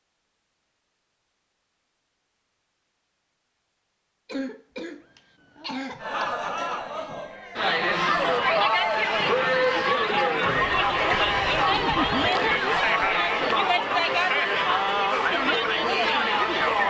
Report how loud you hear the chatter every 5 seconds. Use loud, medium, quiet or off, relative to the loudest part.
off, loud, loud, loud.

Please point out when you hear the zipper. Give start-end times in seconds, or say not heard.
10.4-12.3.